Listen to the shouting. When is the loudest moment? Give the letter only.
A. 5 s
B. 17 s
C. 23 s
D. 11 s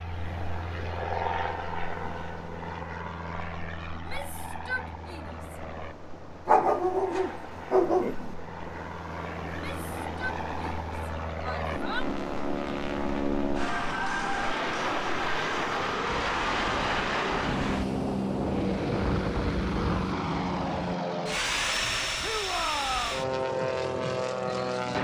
C.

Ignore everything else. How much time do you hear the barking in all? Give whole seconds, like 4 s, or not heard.
2 s.